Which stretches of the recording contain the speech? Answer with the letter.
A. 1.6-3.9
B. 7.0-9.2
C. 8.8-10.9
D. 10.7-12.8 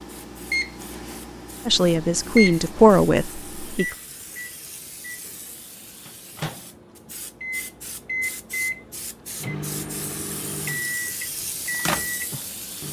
A.